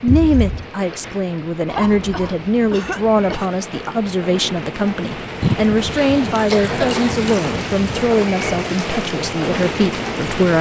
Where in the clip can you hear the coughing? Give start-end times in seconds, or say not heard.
1.6-3.5, 6.5-7.2.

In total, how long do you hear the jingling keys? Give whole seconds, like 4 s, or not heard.
3 s.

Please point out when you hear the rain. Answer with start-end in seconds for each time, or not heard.
0.0-10.5.